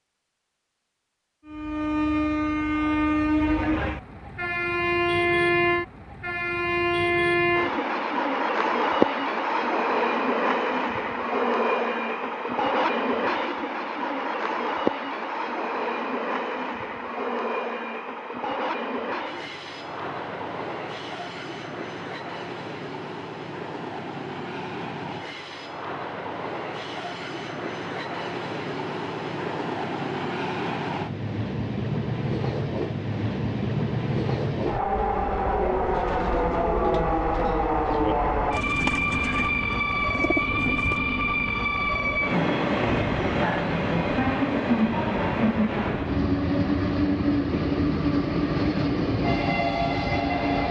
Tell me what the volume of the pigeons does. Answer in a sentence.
The volume of the pigeons stays about the same.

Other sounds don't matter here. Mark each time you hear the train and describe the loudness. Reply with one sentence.
The train can be heard from 1.4 to 50.6 s, getting quieter then louder.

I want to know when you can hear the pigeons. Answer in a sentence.
You can hear the pigeons from 34.9 to 41.0 s.